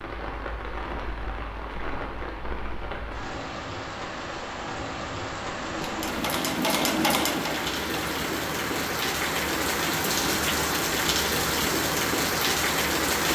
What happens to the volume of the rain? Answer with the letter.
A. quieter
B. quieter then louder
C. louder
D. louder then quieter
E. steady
C.